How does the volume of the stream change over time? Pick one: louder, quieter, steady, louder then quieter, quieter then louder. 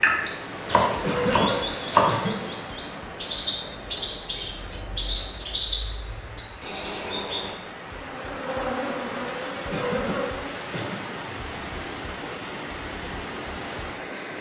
quieter then louder.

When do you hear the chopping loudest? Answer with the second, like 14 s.
2 s.